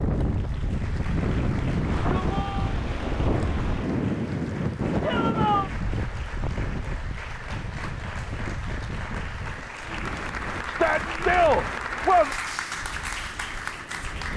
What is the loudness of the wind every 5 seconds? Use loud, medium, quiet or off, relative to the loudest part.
loud, medium, quiet.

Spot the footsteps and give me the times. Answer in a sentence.
You can't hear the footsteps here.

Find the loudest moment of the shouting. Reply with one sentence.
The loudest moment of the shouting is at 11 seconds.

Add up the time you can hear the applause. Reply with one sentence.
The applause can be heard for 14 seconds in total.